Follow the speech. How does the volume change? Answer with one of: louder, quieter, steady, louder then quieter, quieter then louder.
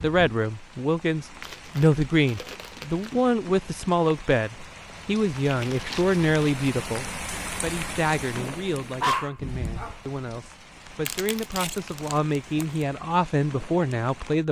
quieter then louder.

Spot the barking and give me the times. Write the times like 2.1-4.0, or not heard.
9.0-10.2.